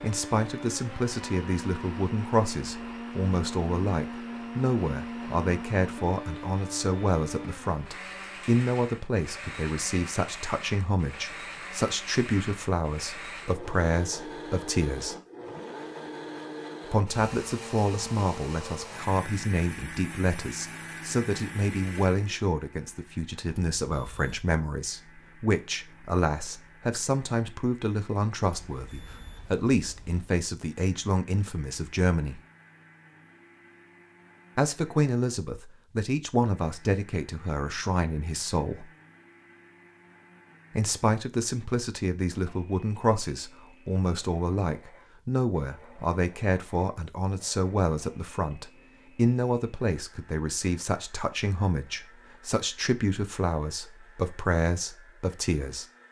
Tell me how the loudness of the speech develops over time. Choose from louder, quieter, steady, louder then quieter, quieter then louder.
steady.